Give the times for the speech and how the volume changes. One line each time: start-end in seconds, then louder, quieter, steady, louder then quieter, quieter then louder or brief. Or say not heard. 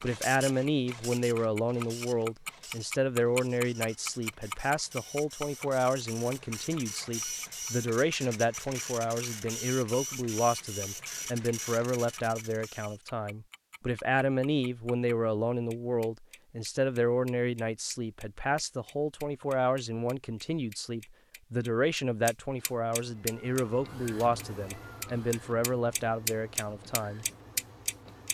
0.0-27.2 steady.